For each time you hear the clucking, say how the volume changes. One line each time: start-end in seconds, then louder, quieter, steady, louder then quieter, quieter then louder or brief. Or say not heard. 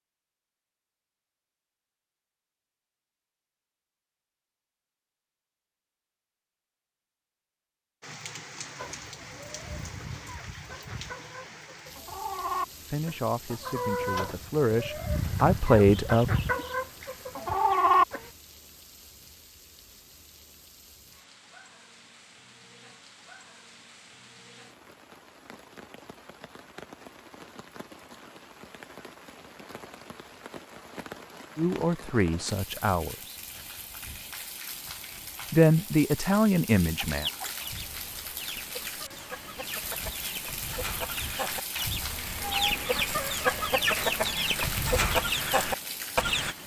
8.8-18.3 louder
37.0-46.5 louder.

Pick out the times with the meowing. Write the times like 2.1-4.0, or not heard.
42.4-43.0.